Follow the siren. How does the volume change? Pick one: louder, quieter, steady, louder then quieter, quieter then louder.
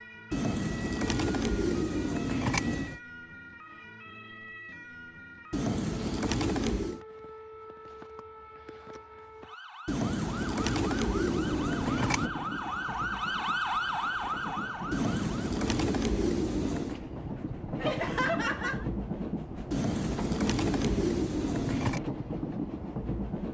louder.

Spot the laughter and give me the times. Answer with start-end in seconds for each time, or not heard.
17.8-18.9.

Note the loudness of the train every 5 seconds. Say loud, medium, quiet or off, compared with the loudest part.
off, off, medium, loud, loud.